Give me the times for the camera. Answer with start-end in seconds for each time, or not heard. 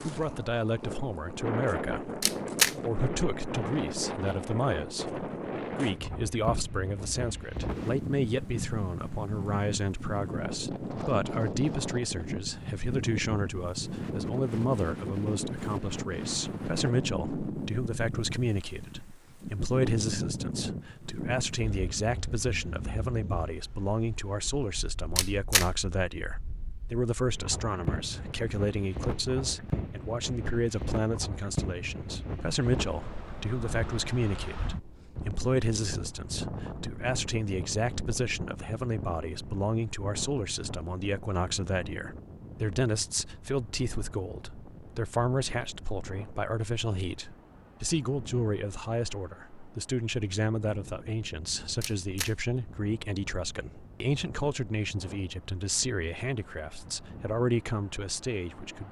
2.2-2.8, 25.1-25.6, 51.8-52.3.